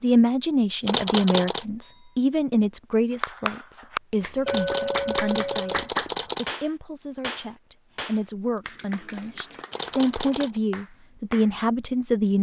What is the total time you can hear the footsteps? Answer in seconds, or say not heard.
not heard.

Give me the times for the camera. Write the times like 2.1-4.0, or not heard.
0.8-1.6, 4.5-6.6, 9.7-10.6.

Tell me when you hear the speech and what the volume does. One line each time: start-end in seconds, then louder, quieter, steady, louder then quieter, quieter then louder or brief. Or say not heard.
0.0-12.3 quieter then louder.